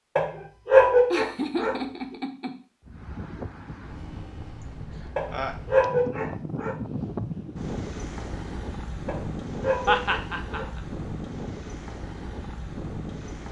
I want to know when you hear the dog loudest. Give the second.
1 s.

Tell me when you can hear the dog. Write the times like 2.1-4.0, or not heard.
0.1-1.8, 5.2-6.8, 9.1-10.7.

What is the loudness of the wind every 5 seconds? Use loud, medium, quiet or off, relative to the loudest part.
medium, loud, loud.